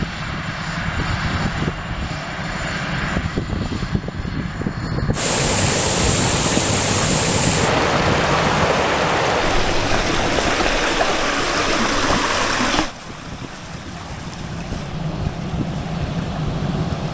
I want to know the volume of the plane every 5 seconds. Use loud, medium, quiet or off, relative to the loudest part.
loud, loud, medium, loud.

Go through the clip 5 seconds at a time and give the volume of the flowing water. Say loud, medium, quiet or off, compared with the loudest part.
off, loud, loud, quiet.